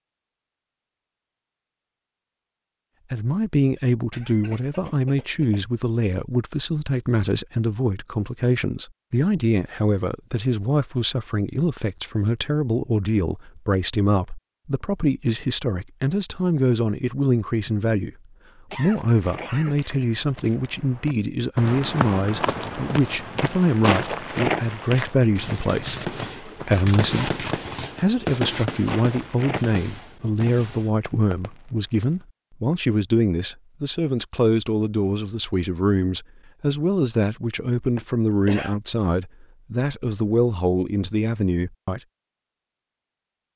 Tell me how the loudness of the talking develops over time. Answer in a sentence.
The loudness of the talking stays about the same.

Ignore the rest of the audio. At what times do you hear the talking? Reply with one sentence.
The talking can be heard from 3.1 to 18.1 s and from 18.7 to 42.0 s.